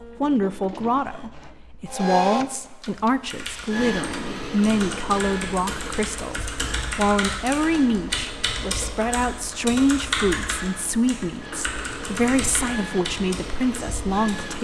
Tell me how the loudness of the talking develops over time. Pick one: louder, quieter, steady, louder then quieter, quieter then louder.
steady.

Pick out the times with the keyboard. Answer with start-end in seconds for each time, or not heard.
2.8-14.5.